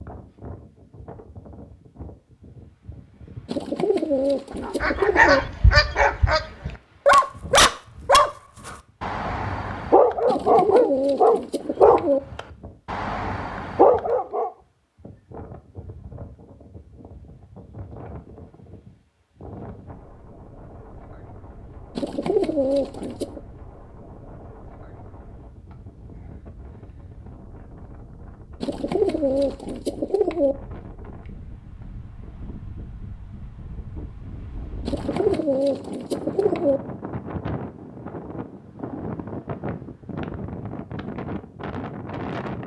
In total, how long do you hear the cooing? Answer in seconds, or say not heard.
9 s.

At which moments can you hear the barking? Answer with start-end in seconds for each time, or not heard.
4.6-14.5.